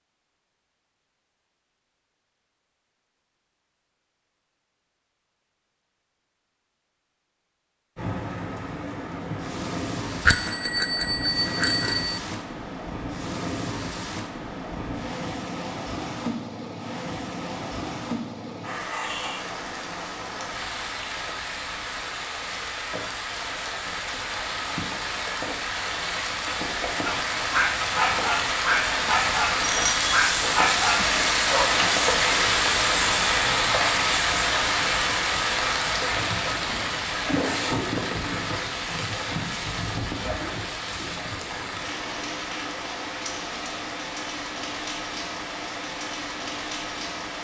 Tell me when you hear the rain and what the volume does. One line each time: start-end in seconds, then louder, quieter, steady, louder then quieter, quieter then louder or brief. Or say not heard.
8.0-47.4 louder then quieter.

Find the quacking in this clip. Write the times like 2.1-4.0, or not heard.
not heard.